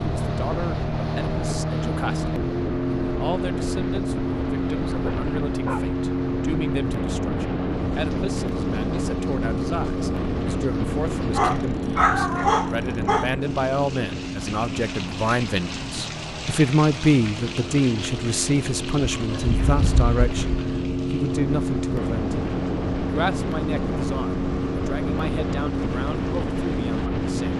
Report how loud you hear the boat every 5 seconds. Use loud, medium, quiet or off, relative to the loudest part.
loud, loud, loud, medium, loud, loud.